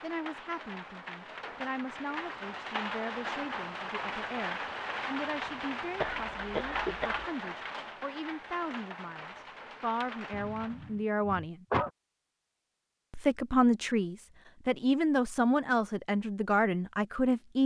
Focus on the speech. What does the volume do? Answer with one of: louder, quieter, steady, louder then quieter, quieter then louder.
louder.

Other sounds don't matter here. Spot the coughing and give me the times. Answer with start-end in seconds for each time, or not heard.
6.0-7.2, 10.3-11.9.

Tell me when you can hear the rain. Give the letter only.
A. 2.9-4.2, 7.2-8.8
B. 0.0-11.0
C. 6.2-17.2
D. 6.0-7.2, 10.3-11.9
B.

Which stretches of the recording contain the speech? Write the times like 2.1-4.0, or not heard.
0.0-11.7, 13.1-17.6.